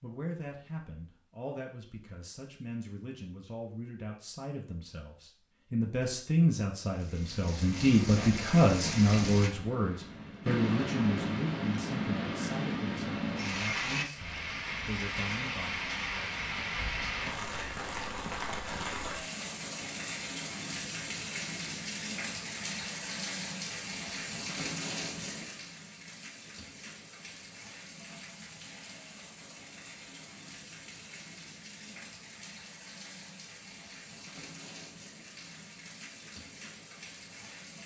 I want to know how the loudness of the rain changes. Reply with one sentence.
The loudness of the rain goes down.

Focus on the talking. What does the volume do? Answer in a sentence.
The volume of the talking goes up, then down.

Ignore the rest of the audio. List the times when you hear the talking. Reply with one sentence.
The talking can be heard from 0.0 to 15.8 s.